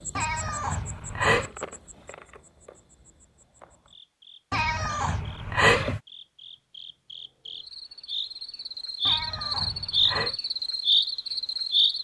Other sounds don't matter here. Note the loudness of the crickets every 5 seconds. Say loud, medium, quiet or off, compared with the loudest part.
quiet, medium, loud.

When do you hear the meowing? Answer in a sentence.
You can hear the meowing from 0.1 to 1.5 s, from 4.5 to 6.0 s and from 9.1 to 10.3 s.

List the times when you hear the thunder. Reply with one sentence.
The thunder can't be heard in this clip.